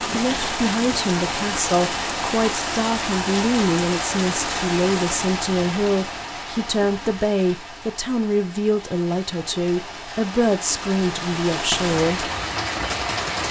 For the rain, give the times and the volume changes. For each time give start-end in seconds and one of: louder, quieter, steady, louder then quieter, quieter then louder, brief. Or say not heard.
0.0-13.4 quieter then louder.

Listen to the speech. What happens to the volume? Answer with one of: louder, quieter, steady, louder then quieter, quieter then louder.
steady.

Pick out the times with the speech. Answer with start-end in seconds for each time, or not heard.
0.1-12.3.